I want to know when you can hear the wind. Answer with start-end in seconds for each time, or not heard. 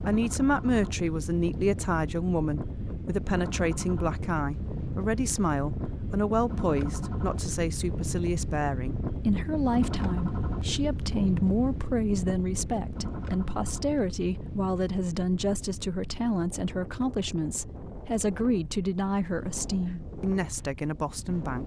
0.0-21.6.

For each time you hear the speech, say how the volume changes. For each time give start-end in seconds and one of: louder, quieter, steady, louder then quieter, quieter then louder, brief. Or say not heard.
0.0-21.6 steady.